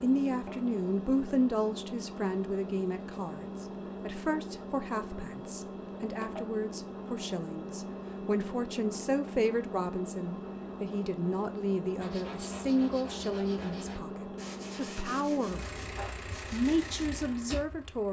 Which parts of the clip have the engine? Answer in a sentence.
The engine can be heard from 0.0 to 18.0 s.